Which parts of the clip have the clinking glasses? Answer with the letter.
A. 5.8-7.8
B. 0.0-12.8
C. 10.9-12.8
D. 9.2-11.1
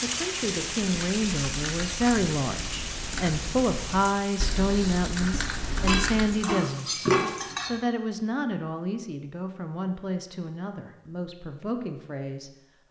A.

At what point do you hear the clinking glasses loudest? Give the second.
7 s.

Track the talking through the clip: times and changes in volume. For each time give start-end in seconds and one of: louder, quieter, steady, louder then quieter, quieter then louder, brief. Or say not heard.
0.0-12.8 quieter.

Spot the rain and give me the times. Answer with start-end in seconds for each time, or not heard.
0.0-7.5.